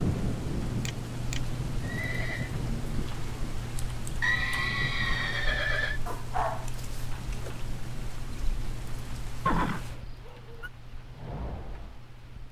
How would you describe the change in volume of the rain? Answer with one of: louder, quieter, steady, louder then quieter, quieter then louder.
quieter.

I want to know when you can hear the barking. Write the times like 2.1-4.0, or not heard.
6.0-7.6.